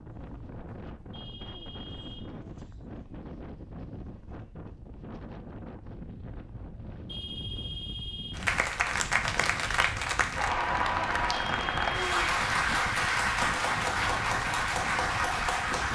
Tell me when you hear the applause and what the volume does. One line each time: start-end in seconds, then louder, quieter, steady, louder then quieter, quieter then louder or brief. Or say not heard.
8.3-15.9 steady.